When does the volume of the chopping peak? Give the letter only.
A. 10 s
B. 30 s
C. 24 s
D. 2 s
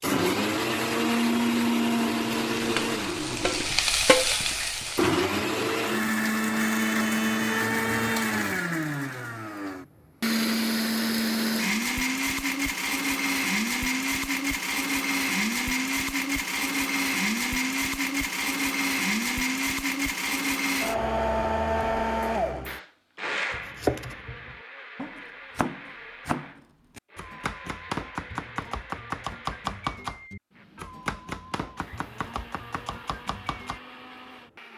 C.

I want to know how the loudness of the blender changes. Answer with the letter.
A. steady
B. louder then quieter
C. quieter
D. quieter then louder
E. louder
C.